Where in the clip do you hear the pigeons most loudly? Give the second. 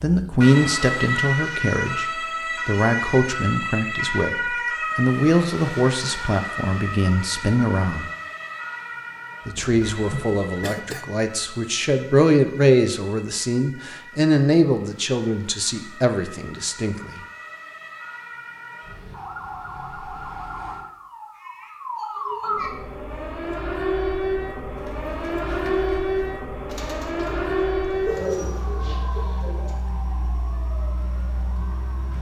28 s.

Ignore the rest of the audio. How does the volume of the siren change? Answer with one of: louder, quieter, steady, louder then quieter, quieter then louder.
quieter then louder.